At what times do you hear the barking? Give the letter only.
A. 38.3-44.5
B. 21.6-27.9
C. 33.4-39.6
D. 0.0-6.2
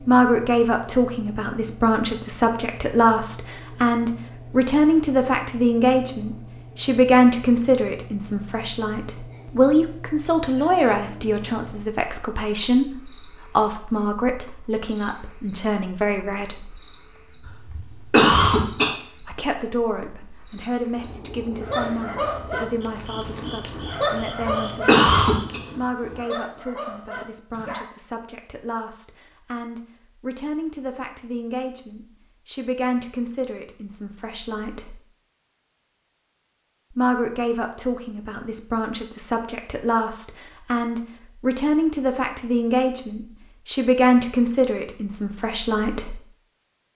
B.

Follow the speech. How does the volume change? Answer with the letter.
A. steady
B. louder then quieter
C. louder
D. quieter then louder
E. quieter
D.